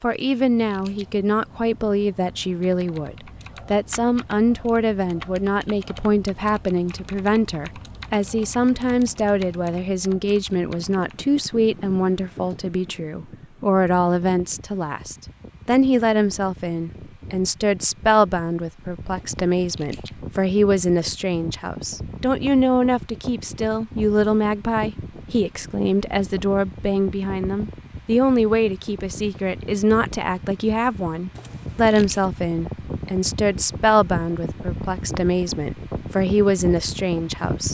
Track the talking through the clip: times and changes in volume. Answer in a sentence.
You can hear the talking from 0.0 to 37.7 s, at a steady volume.